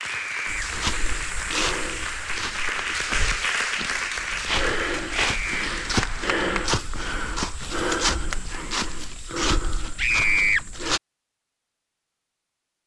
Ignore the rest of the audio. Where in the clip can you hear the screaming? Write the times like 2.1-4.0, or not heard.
0.0-0.7, 5.2-5.7, 9.9-10.6.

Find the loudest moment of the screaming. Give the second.
10 s.